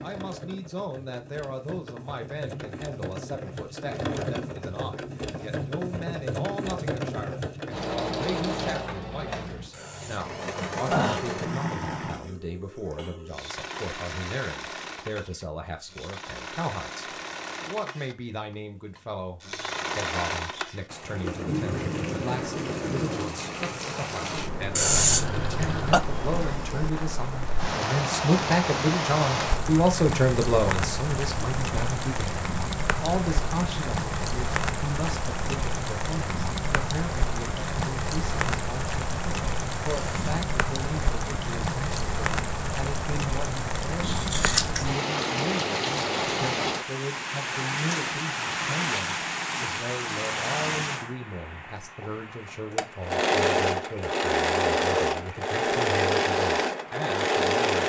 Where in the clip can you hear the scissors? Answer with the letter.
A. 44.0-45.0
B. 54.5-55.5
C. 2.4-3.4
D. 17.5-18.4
A.